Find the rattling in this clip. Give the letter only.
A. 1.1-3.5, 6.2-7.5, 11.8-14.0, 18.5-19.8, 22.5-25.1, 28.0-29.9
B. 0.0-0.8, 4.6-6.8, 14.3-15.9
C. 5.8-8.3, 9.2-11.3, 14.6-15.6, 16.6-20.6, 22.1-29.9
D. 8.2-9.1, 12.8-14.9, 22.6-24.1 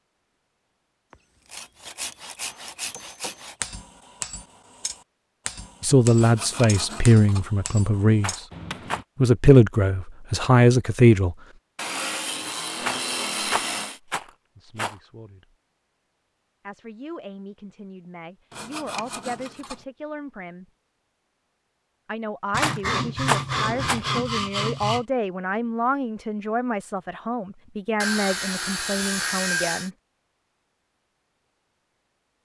D.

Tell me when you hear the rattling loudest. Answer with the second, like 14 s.
23 s.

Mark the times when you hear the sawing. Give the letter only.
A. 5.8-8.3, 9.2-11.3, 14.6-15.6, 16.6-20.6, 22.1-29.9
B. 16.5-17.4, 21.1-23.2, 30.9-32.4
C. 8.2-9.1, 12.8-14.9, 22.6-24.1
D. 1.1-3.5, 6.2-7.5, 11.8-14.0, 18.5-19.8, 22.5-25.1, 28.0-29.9
D.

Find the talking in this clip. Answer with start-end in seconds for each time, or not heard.
5.8-8.3, 9.2-11.3, 14.6-15.6, 16.6-20.6, 22.1-29.9.